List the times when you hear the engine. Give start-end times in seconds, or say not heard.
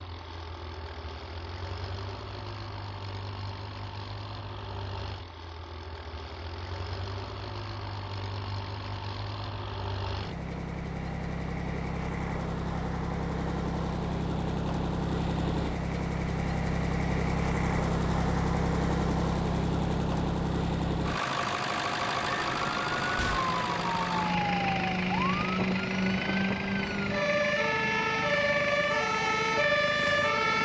0.0-30.6.